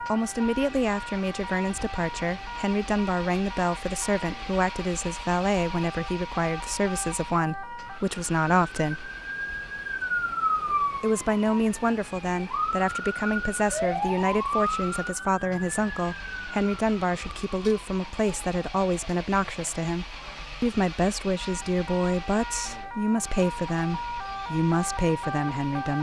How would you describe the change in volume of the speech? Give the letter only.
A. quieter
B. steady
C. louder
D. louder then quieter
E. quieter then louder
B.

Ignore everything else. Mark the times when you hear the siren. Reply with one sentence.
The siren can be heard from 0.0 to 25.9 s.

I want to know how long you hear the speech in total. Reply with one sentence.
The speech can be heard for 24 seconds in total.